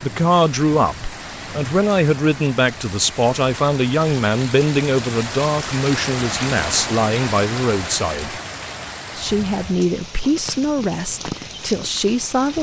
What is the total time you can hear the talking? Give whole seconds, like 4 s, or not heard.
12 s.